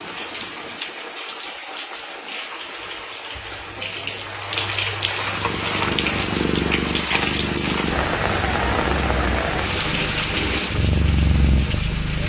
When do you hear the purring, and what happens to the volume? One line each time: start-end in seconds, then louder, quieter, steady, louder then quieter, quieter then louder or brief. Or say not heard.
5.2-12.2 quieter then louder.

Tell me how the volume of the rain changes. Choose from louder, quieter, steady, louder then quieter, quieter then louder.
louder.